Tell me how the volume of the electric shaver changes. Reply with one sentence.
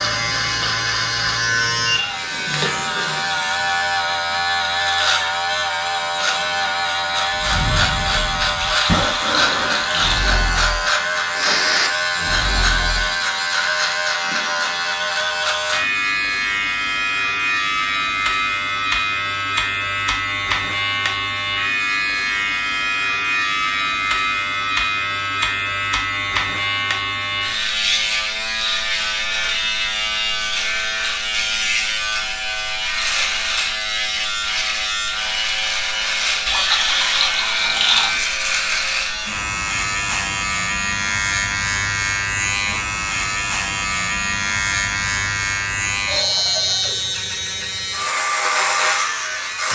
The volume of the electric shaver stays about the same.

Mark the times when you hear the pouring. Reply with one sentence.
The pouring can be heard from 8.6 to 10.3 s and from 36.5 to 38.2 s.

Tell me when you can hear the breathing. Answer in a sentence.
You can hear the breathing from 7.3 to 13.2 s.